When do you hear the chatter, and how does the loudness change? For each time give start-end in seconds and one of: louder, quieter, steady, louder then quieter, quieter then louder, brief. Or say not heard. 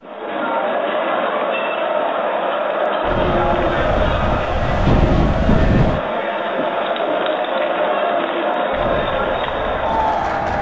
0.0-10.5 steady.